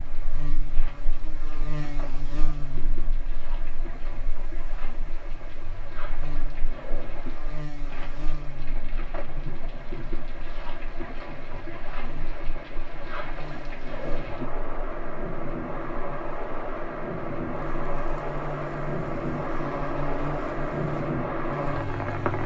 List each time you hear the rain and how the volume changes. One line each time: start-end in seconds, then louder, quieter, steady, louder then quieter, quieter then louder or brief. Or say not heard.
0.0-22.4 louder.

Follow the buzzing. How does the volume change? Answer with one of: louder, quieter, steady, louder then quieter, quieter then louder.
quieter then louder.